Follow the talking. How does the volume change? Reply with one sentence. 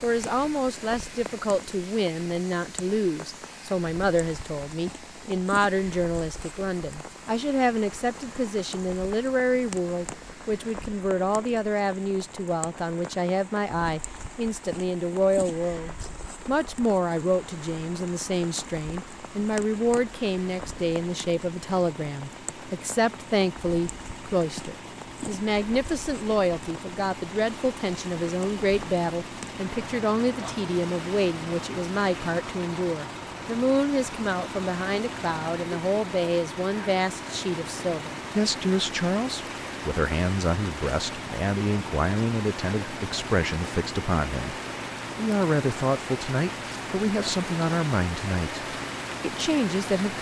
The volume of the talking stays about the same.